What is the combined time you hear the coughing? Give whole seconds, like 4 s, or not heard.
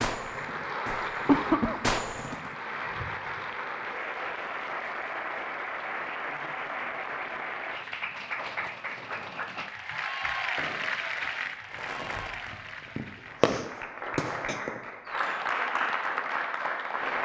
2 s.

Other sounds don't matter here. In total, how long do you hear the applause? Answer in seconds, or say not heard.
17 s.